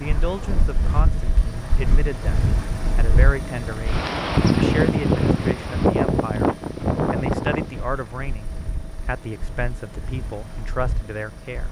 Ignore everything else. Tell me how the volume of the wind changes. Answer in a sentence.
The volume of the wind goes up, then down.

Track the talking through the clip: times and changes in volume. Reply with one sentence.
You can hear the talking from 0.0 to 11.6 s, at a steady volume.